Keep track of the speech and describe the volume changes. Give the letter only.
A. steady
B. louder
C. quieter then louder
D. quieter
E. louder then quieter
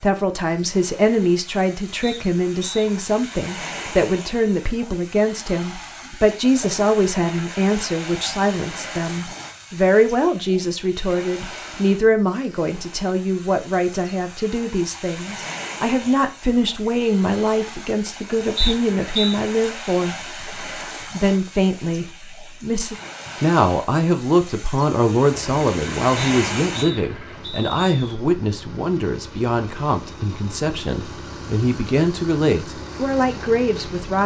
A.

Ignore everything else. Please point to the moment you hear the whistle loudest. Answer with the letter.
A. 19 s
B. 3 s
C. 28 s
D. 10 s
A.